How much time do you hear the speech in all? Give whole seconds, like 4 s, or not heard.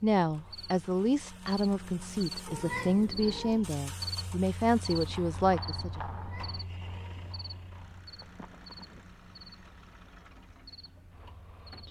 6 s.